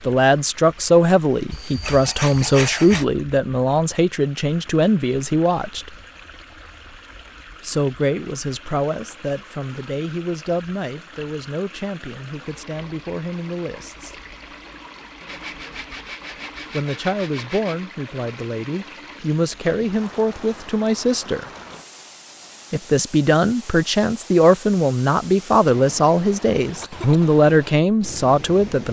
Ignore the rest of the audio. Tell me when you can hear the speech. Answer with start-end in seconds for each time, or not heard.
0.1-6.0, 7.6-14.2, 16.7-21.5, 22.7-28.8.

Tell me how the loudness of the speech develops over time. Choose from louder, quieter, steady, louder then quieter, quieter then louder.
quieter then louder.